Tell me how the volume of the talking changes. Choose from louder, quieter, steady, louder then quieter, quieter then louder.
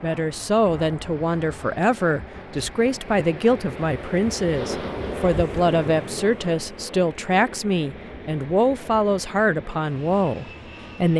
steady.